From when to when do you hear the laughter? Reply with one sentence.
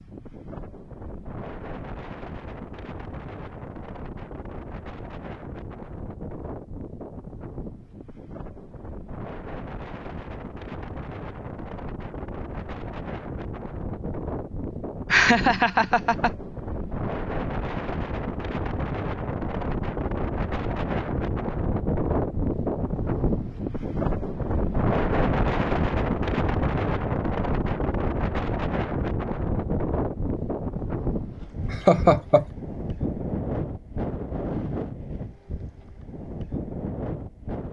You can hear the laughter from 15.1 to 16.3 s and from 31.7 to 32.5 s.